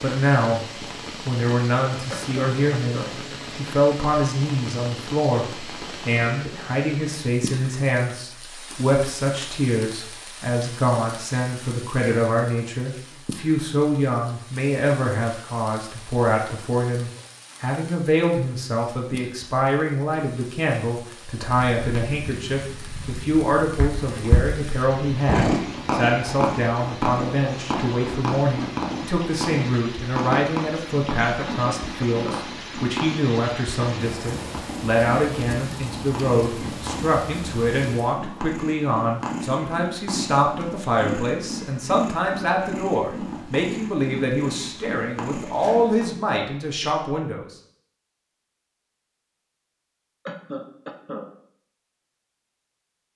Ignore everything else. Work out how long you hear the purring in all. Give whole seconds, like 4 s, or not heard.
25 s.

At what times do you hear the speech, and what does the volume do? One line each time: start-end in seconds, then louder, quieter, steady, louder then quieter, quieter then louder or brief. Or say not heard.
0.0-0.6 brief
1.2-47.5 steady.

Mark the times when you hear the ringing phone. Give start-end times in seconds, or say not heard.
not heard.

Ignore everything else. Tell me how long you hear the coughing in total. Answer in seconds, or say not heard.
3 s.